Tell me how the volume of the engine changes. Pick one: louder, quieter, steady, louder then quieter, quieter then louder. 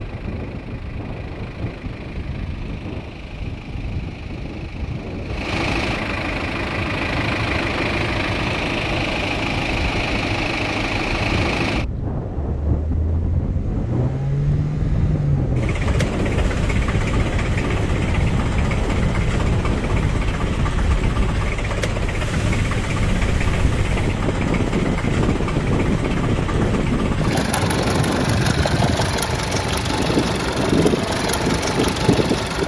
louder.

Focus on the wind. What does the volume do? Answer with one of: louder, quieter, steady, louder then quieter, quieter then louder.
louder.